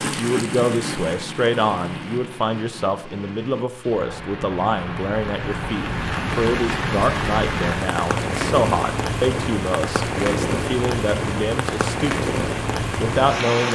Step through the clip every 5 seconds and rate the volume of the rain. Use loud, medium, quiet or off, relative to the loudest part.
medium, loud, loud.